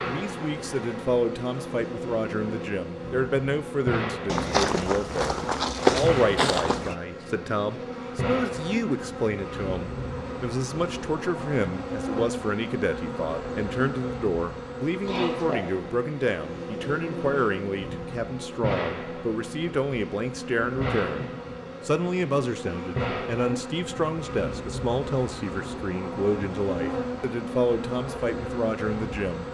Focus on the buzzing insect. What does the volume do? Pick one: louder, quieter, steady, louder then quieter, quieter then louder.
steady.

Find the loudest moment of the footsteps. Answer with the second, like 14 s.
6 s.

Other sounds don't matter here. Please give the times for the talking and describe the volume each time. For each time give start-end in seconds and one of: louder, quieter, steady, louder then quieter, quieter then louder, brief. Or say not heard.
0.0-29.4 steady.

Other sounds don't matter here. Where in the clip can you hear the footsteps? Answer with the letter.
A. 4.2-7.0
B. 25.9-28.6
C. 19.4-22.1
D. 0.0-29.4
A.